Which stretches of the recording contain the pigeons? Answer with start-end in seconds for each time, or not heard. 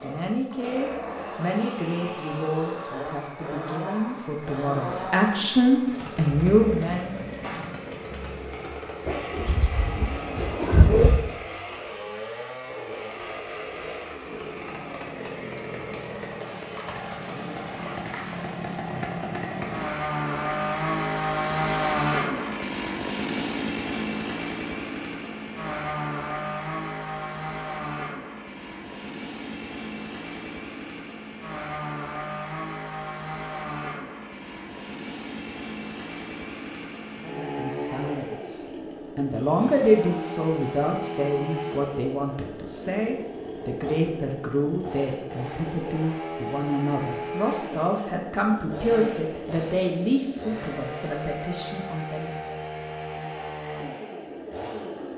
9.1-11.2.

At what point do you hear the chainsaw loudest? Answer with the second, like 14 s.
22 s.